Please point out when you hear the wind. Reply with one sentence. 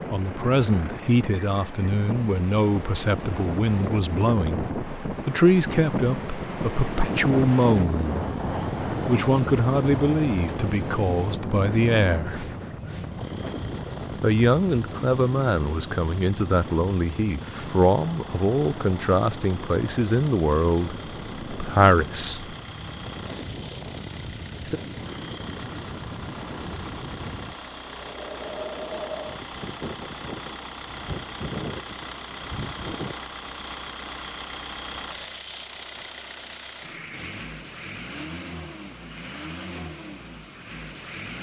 The wind can be heard from 0.0 to 33.1 s.